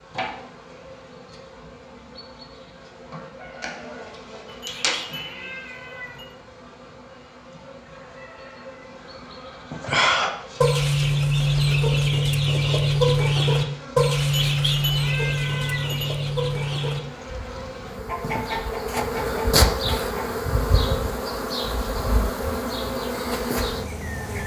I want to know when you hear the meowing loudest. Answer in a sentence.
The loudest moment of the meowing is at 15 seconds.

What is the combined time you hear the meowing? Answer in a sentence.
You can hear the meowing for 4 seconds altogether.